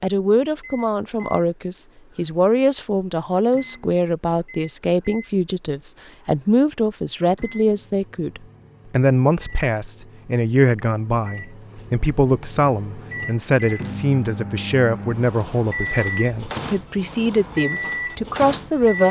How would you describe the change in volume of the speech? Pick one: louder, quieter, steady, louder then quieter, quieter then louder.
steady.